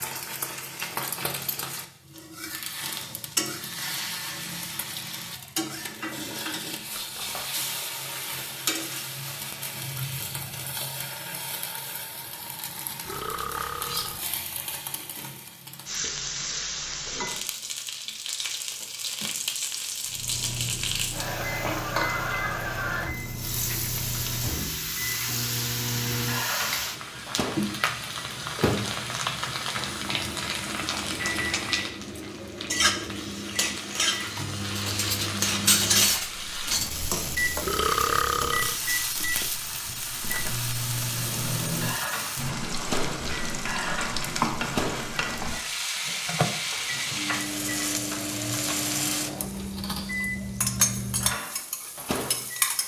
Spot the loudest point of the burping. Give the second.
38 s.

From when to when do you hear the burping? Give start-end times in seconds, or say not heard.
13.0-14.2, 37.6-38.8.